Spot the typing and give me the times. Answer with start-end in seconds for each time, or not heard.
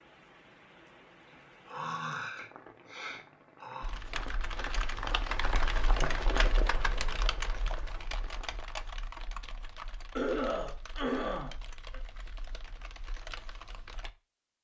3.8-14.2.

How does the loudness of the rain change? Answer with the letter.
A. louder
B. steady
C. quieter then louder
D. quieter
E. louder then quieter
E.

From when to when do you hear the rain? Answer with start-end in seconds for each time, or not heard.
0.0-8.6.